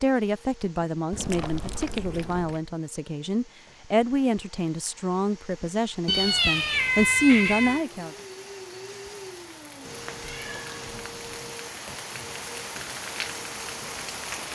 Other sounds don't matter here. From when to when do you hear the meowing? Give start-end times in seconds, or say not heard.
1.1-2.6, 6.0-7.8, 9.8-11.6.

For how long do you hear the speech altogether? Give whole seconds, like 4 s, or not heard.
8 s.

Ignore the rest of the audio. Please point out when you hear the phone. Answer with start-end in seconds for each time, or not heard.
not heard.